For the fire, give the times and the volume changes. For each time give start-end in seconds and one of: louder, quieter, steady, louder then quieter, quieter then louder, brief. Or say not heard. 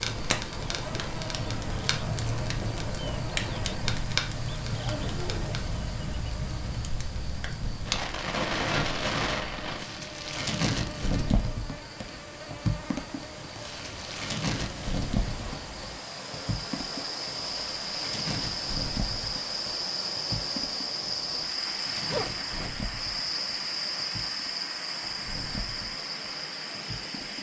0.0-27.3 quieter.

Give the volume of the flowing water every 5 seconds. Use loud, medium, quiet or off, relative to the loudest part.
loud, medium, medium, loud, loud, loud.